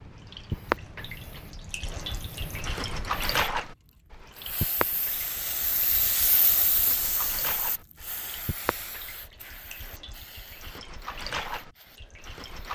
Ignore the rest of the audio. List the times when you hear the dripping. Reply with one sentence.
You can hear the dripping from 0.0 to 12.7 s.